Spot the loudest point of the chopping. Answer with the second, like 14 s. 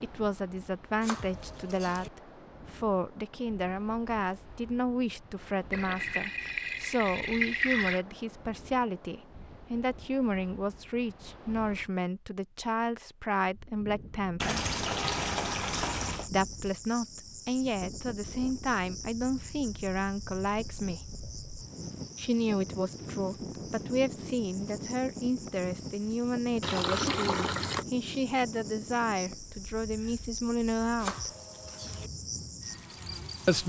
31 s.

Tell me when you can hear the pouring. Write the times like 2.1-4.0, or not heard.
5.7-8.1, 14.4-16.3, 26.6-27.9.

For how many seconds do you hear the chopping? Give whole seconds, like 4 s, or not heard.
2 s.